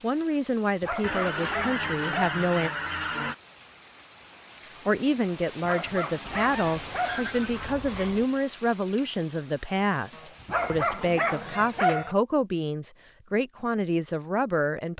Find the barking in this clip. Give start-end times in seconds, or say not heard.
0.8-2.4, 5.6-7.3, 10.4-12.2.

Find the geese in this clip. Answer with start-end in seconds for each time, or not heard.
1.0-3.4, 6.2-8.2, 10.1-12.2.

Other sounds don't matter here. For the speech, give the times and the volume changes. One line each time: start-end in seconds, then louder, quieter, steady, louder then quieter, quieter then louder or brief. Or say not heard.
0.0-2.7 brief
4.8-14.9 steady.